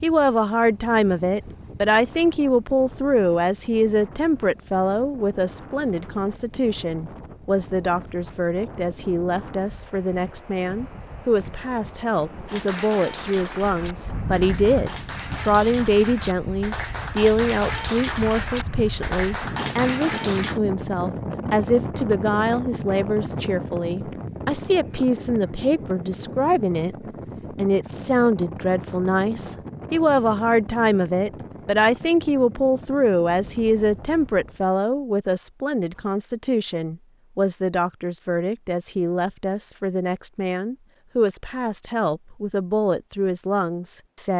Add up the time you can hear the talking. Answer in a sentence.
The talking can be heard for 44 seconds in total.